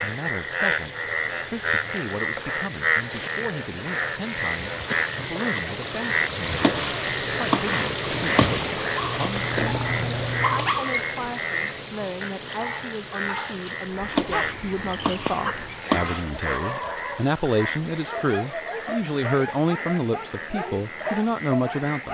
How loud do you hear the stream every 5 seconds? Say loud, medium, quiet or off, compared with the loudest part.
medium, loud, medium, quiet, quiet.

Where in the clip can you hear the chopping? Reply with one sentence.
You can hear the chopping from 6.5 to 8.8 s and from 14.0 to 16.2 s.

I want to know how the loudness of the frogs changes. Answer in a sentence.
The loudness of the frogs goes down.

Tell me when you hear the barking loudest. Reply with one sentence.
The volume of the barking peaks at 11 seconds.